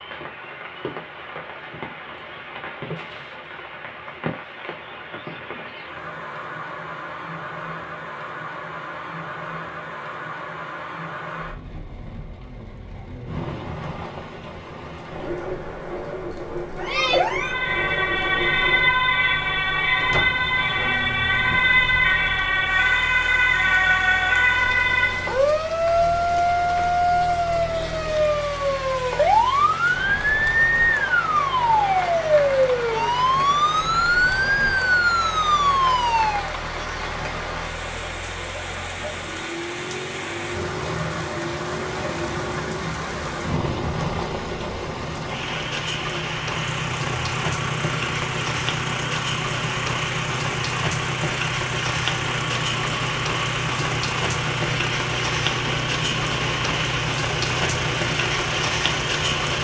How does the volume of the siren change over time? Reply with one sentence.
The volume of the siren stays about the same.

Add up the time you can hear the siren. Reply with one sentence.
The siren can be heard for 20 seconds in total.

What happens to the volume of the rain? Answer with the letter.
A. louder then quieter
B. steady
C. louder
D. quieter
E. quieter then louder
C.